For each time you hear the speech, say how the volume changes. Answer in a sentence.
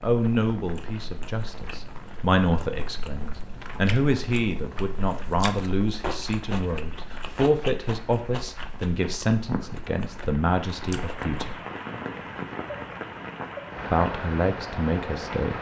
You can hear the speech from 0.0 to 11.6 s, at a steady volume; and briefly from 13.9 to 15.5 s.